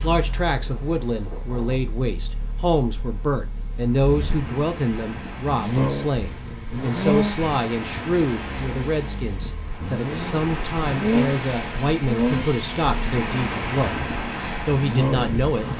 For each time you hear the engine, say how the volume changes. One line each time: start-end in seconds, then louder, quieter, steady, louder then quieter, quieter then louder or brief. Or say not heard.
0.0-15.7 louder.